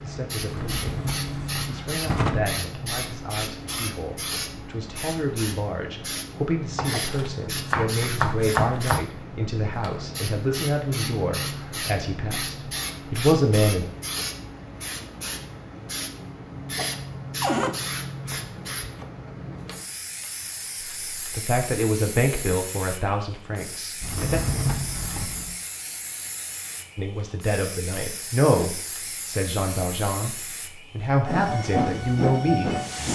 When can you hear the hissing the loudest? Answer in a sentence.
The volume of the hissing peaks at 32 seconds.